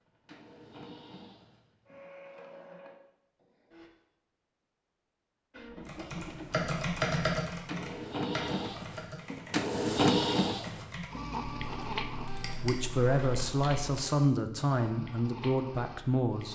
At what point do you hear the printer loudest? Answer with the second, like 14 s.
10 s.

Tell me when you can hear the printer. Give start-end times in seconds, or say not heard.
0.0-3.9, 5.5-16.5.